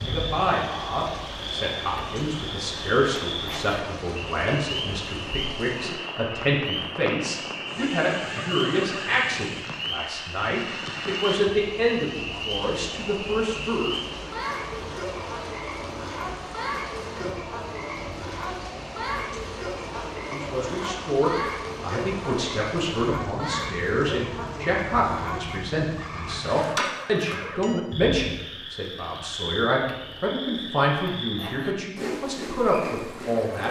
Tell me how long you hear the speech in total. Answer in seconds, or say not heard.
27 s.